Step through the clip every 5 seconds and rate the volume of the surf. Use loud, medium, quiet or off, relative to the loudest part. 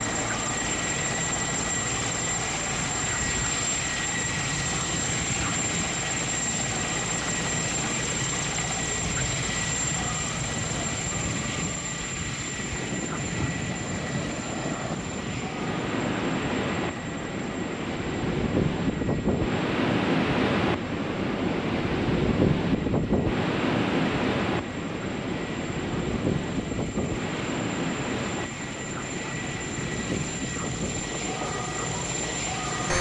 quiet, quiet, medium, loud, loud, medium, medium.